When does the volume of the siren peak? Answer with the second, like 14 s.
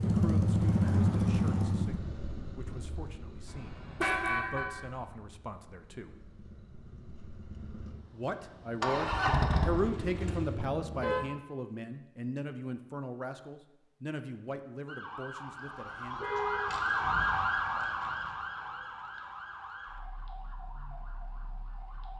17 s.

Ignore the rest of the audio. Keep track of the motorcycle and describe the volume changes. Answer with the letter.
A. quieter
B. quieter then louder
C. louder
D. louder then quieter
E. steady
B.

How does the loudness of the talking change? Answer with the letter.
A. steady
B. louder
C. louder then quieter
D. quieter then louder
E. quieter
C.